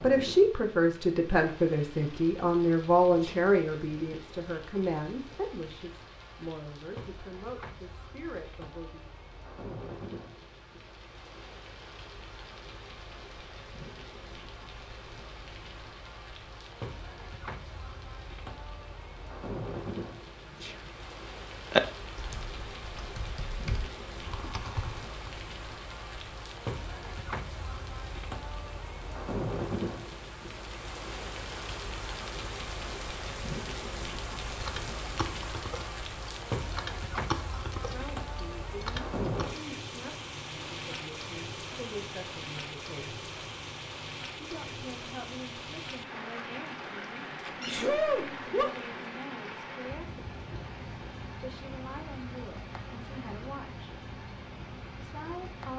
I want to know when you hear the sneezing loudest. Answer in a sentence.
The volume of the sneezing peaks at 48 seconds.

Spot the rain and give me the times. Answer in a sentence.
The rain can be heard from 0.0 to 55.7 s.